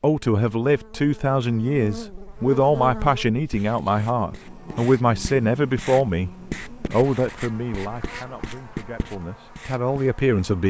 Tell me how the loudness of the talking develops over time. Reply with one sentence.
The loudness of the talking goes down.